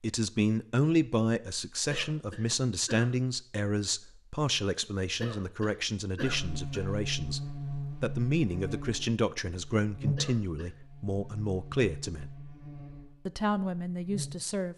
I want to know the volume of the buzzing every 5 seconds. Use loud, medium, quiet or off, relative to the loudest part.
off, loud, loud.